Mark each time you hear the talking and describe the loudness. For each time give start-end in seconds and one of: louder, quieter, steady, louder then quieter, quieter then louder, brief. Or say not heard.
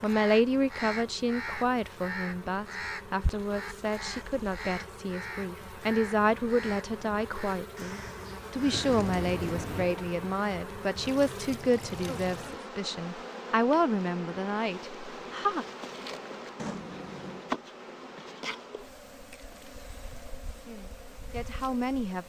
0.0-15.7 steady
20.6-22.2 brief.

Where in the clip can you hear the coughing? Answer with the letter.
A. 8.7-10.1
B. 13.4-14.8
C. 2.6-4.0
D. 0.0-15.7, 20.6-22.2
A.